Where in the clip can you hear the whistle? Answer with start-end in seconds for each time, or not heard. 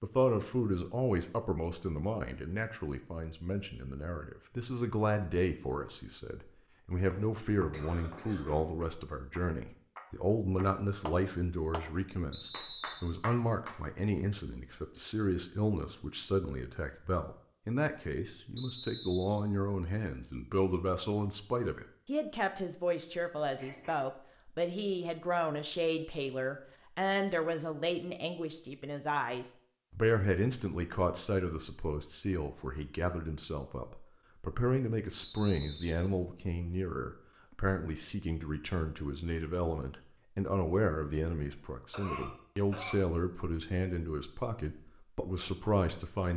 12.3-13.2, 18.6-19.4, 35.2-36.1.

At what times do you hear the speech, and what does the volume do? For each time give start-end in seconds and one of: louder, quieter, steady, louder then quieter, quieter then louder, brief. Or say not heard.
0.0-46.3 steady.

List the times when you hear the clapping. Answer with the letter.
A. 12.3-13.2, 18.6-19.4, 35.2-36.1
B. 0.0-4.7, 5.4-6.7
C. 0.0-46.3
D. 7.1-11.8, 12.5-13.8
D.